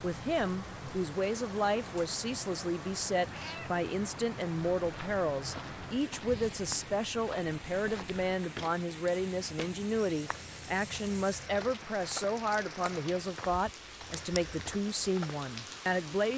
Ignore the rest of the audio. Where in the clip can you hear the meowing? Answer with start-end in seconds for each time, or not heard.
3.3-3.7.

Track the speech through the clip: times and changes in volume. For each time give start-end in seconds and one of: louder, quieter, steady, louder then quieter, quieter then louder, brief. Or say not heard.
0.0-16.3 steady.